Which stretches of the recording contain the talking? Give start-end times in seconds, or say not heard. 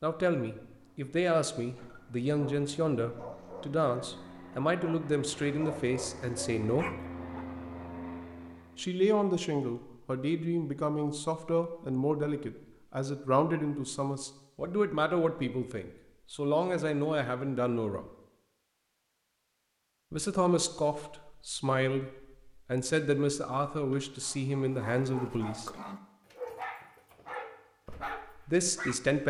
0.0-6.8, 8.8-18.1, 20.1-25.7, 27.9-29.2.